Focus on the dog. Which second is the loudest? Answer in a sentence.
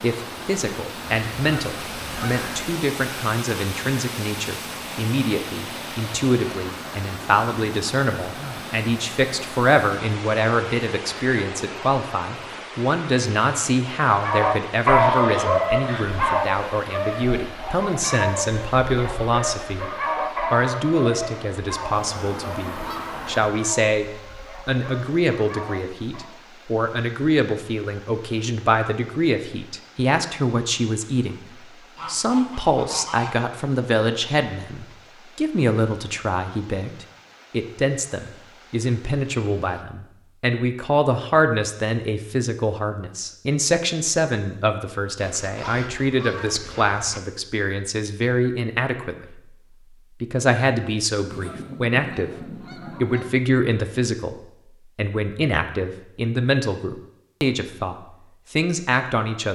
The volume of the dog peaks at 15 seconds.